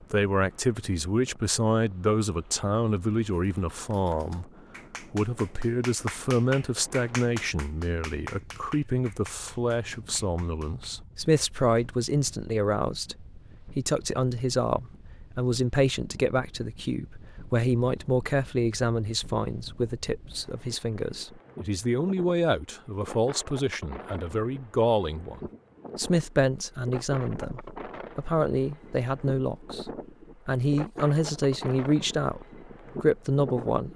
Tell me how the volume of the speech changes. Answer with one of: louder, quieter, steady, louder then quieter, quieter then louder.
steady.